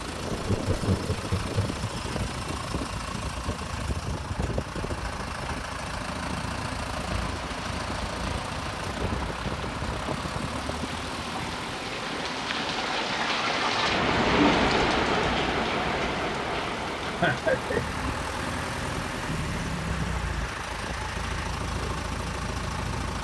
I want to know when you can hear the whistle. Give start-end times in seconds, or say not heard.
not heard.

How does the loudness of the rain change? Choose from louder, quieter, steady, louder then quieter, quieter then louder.
louder then quieter.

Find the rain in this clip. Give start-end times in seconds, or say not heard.
7.0-23.2.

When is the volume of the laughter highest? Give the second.
17 s.